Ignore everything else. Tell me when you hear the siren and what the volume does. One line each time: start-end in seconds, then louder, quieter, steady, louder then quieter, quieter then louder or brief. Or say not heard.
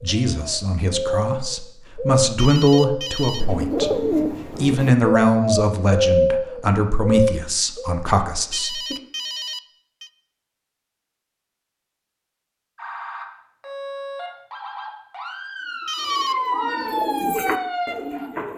12.8-18.3 louder.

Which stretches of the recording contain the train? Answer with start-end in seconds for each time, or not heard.
not heard.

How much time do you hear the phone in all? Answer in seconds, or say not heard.
3 s.